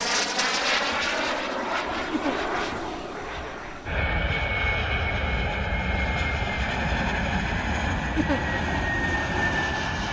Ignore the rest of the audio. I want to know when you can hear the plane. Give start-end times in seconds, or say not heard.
0.0-10.0.